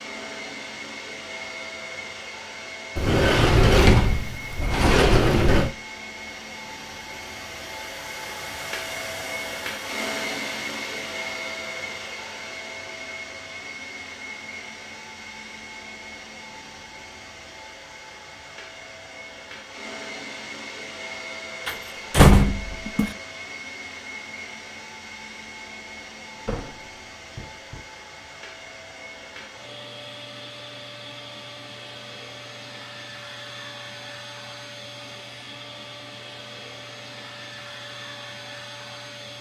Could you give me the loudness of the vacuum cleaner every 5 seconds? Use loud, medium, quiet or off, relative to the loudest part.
loud, loud, loud, medium, loud, medium, medium, medium.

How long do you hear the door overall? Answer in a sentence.
The door can be heard for 6 seconds in total.